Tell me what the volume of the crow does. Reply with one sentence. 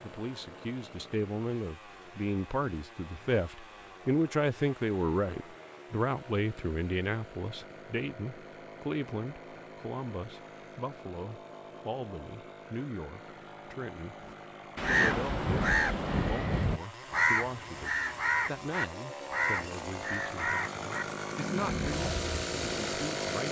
The loudness of the crow goes down.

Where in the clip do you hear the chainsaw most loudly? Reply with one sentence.
The volume of the chainsaw peaks at 23 seconds.